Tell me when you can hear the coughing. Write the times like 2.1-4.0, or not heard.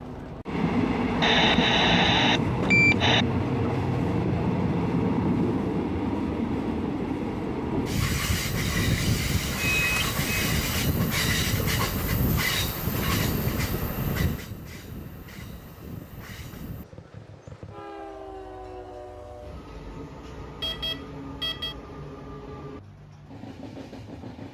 not heard.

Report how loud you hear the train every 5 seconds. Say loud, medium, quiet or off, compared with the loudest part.
loud, loud, loud, quiet, quiet.